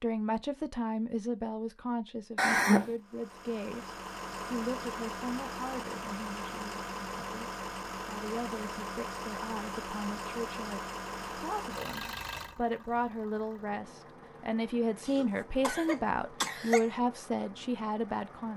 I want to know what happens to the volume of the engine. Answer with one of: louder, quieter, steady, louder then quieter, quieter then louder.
quieter.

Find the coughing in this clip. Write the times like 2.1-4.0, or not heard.
2.4-3.0, 15.1-16.9.